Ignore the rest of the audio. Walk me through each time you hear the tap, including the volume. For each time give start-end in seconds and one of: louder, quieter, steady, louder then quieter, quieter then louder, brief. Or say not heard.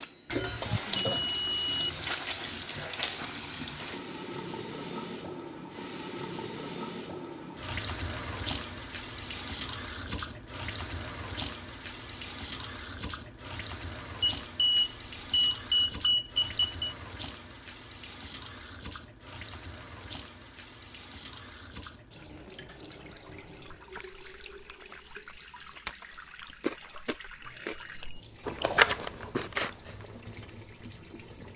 0.0-31.5 quieter.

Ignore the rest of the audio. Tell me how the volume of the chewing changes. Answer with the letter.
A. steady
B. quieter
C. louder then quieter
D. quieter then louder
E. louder
C.